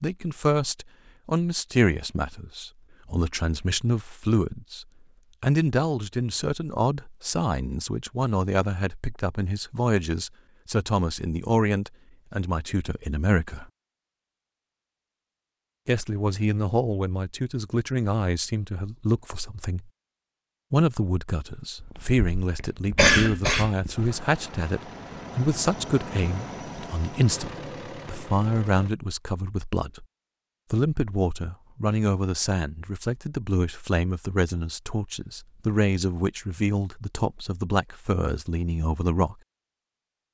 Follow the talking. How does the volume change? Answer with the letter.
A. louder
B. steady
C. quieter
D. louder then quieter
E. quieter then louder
B.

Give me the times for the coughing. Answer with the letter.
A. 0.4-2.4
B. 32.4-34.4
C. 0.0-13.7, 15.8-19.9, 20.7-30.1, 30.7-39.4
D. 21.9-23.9
D.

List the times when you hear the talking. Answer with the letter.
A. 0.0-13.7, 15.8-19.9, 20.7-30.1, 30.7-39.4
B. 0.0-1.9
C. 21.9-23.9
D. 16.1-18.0
A.